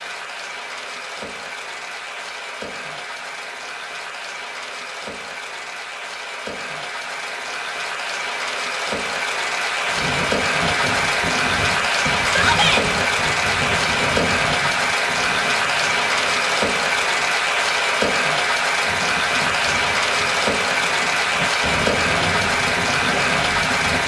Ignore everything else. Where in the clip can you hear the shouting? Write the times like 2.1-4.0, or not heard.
12.2-12.8.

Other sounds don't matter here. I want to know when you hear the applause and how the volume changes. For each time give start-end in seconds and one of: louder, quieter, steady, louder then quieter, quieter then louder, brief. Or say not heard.
0.0-24.0 louder.